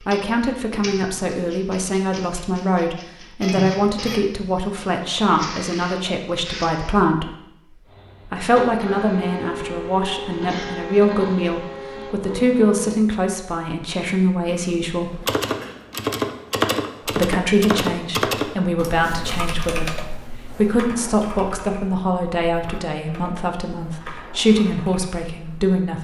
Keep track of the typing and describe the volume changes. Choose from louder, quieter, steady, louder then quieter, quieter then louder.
quieter.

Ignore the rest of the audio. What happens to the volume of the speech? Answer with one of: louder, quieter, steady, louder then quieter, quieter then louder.
steady.